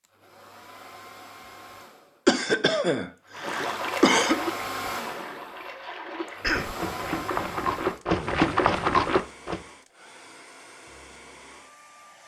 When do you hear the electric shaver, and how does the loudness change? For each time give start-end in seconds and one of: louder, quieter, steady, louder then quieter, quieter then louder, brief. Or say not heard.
not heard.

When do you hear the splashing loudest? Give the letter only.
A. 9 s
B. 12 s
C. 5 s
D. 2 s
A.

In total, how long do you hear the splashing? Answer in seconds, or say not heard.
6 s.